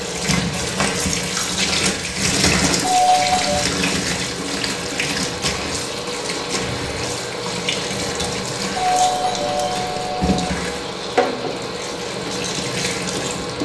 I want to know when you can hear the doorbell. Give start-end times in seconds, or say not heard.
2.8-3.6, 8.8-10.2.